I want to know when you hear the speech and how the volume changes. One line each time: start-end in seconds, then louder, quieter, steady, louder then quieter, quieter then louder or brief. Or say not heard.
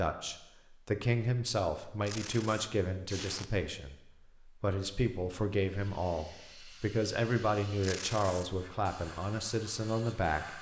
0.0-10.5 steady.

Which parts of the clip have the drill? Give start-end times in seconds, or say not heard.
not heard.